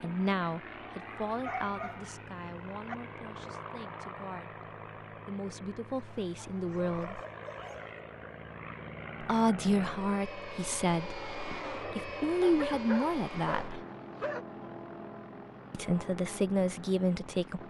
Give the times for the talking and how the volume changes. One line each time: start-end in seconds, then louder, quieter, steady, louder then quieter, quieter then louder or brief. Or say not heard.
0.0-7.2 quieter then louder
9.2-13.8 quieter then louder
15.7-17.6 brief.